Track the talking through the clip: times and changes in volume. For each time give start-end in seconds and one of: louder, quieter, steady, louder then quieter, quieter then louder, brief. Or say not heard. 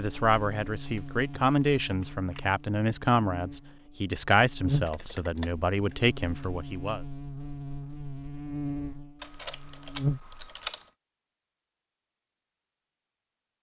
0.0-7.0 steady.